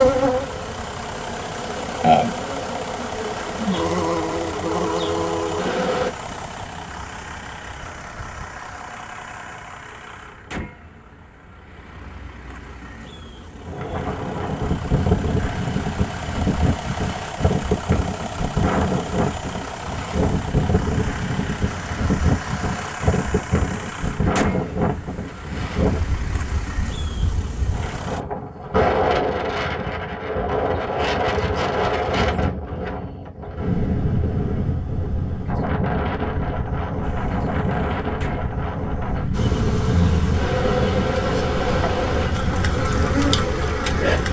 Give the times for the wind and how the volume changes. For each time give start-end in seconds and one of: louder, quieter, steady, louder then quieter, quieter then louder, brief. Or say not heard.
13.6-44.2 steady.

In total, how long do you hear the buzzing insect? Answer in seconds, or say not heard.
11 s.